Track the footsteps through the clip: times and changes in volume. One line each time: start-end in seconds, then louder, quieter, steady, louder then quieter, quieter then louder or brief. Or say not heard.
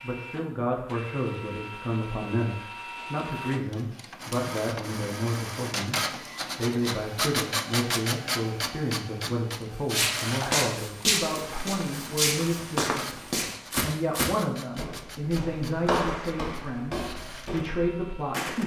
9.8-18.6 quieter.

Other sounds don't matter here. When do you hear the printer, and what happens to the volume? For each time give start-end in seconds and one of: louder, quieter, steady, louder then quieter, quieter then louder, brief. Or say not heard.
0.0-18.5 louder then quieter.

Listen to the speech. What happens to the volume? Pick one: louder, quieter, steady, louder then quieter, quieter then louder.
steady.